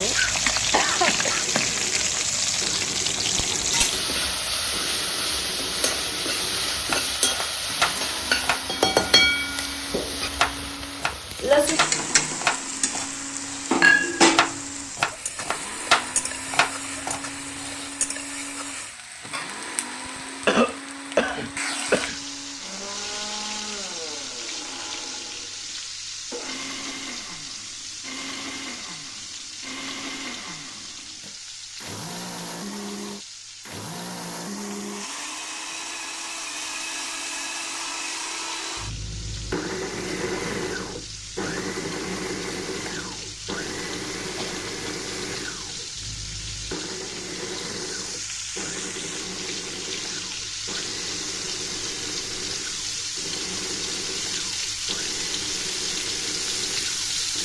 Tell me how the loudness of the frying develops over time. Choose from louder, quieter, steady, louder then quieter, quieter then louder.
quieter then louder.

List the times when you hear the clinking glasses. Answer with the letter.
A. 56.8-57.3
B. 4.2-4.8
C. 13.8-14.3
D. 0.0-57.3
C.